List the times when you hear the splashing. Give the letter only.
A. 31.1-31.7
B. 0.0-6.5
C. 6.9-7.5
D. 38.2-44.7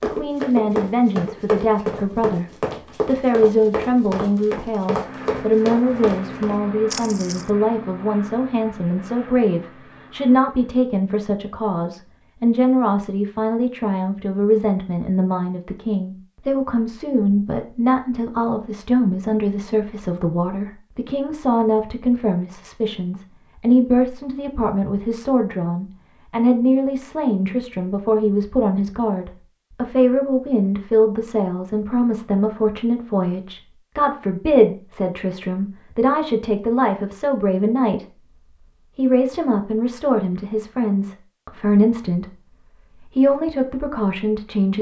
C.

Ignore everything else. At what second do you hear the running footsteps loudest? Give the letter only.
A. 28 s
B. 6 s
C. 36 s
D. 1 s
D.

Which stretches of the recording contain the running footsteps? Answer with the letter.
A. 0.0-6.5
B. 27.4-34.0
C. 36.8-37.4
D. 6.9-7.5
A.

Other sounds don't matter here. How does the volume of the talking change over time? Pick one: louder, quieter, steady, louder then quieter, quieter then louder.
steady.